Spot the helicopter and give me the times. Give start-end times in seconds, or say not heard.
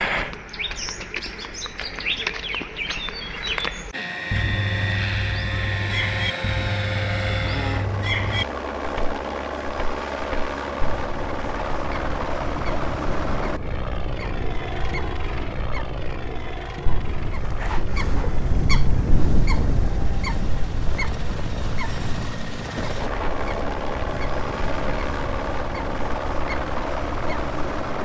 3.9-28.0.